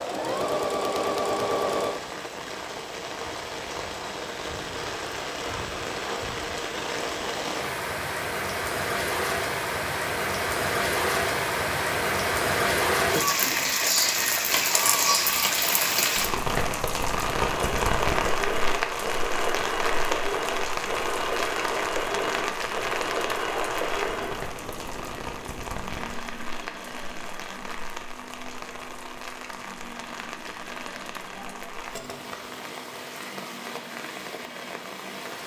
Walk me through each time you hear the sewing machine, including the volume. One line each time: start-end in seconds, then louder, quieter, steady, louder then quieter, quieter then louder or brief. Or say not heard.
0.0-2.1 brief
17.3-35.4 quieter.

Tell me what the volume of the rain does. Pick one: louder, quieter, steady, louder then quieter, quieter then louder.
louder then quieter.